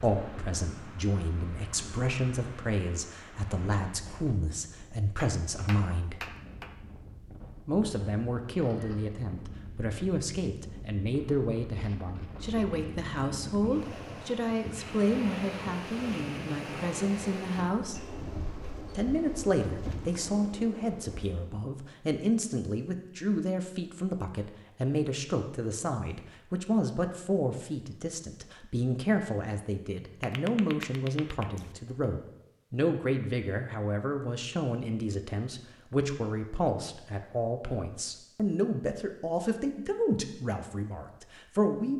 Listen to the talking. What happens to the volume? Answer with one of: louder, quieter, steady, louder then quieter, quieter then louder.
steady.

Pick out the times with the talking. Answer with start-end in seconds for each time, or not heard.
0.0-6.2, 7.7-18.1, 18.9-41.9.